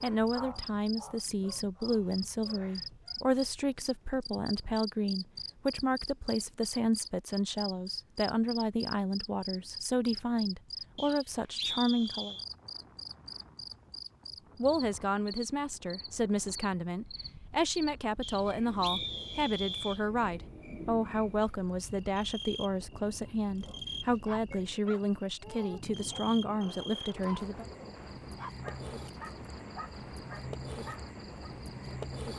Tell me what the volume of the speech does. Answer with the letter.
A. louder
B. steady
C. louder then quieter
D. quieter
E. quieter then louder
B.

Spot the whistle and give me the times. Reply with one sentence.
You can hear the whistle from 10.9 to 12.4 s and from 18.2 to 20.0 s.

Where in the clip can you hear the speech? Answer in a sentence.
The speech can be heard from 0.0 to 12.3 s and from 14.6 to 27.6 s.